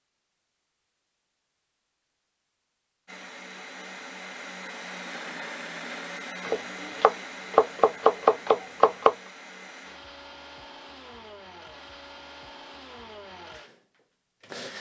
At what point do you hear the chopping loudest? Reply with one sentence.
The loudest moment of the chopping is at 8 seconds.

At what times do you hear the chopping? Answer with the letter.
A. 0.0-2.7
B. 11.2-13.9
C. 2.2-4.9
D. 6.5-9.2
D.